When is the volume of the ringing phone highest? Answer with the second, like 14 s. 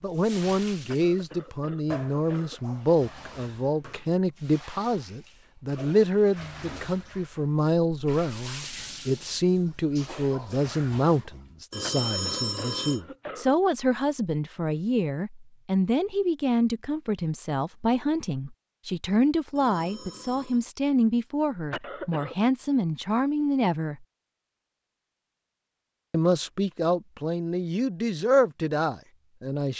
12 s.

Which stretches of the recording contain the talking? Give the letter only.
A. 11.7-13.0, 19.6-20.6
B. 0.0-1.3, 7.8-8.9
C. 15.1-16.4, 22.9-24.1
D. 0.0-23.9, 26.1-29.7
D.